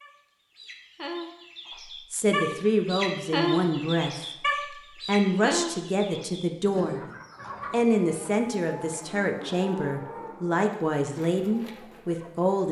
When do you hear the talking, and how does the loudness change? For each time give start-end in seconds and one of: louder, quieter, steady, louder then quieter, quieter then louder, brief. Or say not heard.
2.1-4.2 brief
5.0-7.0 brief
7.7-12.6 steady.